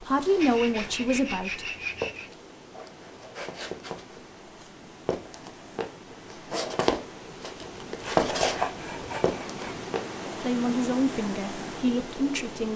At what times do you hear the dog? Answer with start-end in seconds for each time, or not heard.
not heard.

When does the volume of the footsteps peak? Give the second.
8 s.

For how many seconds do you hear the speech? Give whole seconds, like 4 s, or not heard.
4 s.